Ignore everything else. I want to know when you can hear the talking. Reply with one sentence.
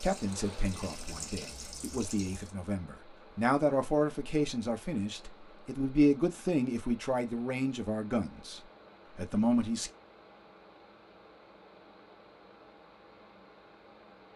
The talking can be heard from 0.0 to 9.9 s.